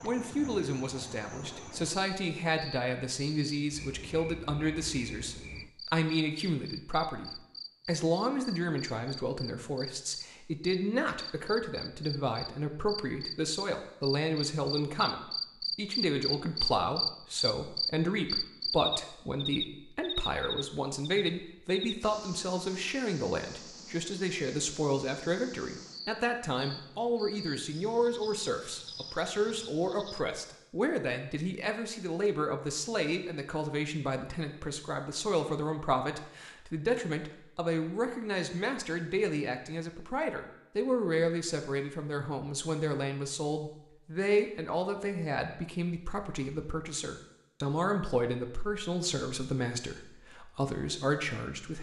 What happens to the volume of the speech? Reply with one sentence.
The volume of the speech stays about the same.